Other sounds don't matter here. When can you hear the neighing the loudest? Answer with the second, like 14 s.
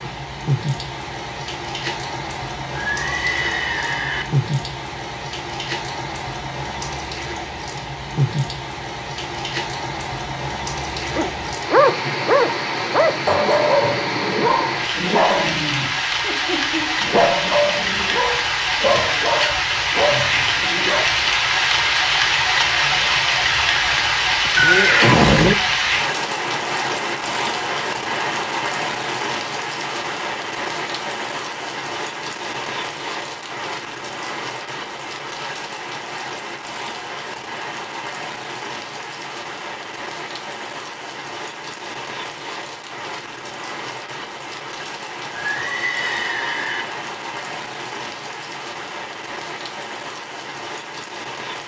25 s.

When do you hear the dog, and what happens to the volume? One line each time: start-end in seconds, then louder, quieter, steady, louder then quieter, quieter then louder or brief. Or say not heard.
11.1-21.1 quieter.